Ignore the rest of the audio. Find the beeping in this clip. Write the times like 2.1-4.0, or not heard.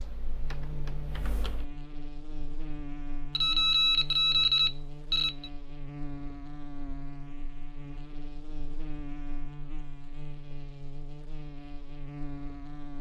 3.4-5.5.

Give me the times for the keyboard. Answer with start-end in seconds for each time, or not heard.
0.0-1.7.